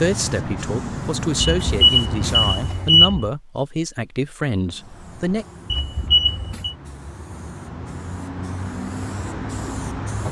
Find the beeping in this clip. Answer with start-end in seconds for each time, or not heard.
1.4-3.3, 5.7-6.8.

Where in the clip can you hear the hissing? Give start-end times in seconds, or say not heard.
0.0-3.0, 4.5-10.2.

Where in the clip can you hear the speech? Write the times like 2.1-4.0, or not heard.
0.0-5.5.